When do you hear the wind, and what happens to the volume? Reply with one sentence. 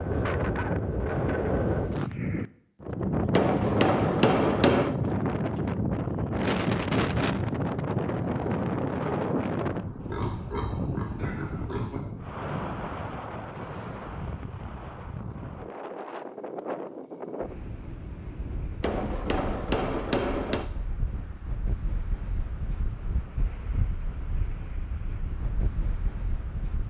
The wind can be heard from 0.0 to 26.8 s, getting quieter.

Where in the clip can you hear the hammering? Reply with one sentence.
You can hear the hammering from 3.3 to 5.0 s and from 18.8 to 20.7 s.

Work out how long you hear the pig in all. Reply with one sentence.
The pig can be heard for 2 seconds in total.